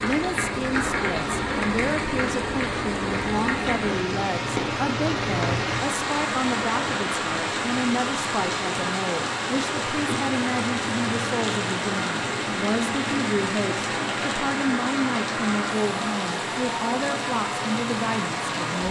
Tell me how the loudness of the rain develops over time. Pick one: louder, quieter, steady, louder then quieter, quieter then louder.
steady.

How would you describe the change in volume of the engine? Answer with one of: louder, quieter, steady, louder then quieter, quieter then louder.
steady.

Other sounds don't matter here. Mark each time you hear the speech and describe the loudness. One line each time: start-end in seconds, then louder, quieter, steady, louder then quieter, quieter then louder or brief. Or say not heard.
0.0-18.8 steady.